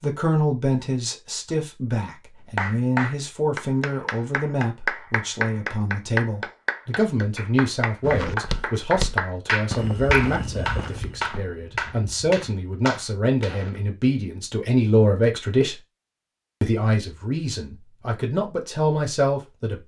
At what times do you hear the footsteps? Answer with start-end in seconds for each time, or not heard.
8.0-13.8.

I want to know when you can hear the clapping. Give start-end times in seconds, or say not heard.
2.5-13.6.